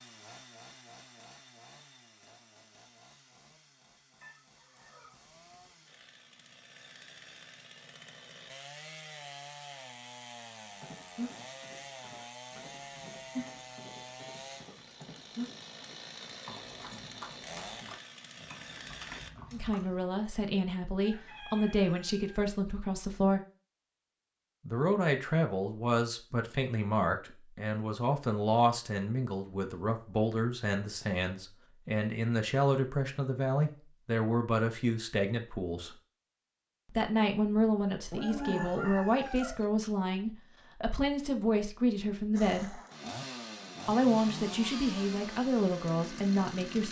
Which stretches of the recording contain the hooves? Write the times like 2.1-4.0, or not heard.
10.7-20.1.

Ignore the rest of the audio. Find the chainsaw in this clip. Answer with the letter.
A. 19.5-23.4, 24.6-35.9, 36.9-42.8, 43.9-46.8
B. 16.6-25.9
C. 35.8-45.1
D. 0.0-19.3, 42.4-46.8
D.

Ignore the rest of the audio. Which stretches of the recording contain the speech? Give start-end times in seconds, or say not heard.
19.5-23.4, 24.6-35.9, 36.9-42.8, 43.9-46.8.